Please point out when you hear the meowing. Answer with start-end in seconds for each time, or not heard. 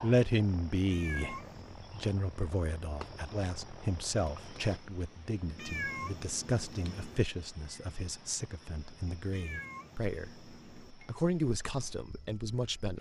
0.8-1.8, 5.5-7.2, 9.3-10.9.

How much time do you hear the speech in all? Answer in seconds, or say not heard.
13 s.